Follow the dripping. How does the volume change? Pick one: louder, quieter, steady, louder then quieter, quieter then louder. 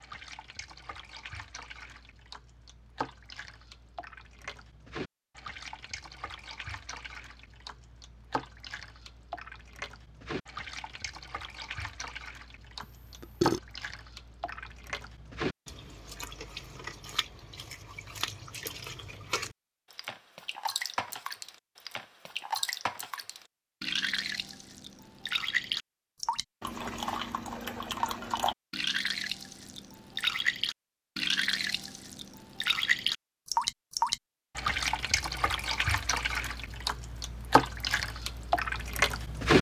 louder.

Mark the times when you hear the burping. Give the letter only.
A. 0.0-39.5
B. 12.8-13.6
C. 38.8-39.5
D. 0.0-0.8
B.